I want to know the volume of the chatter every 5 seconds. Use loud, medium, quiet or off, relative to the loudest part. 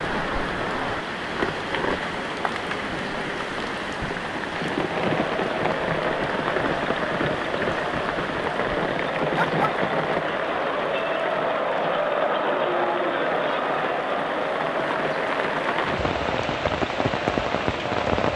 off, medium, loud, medium.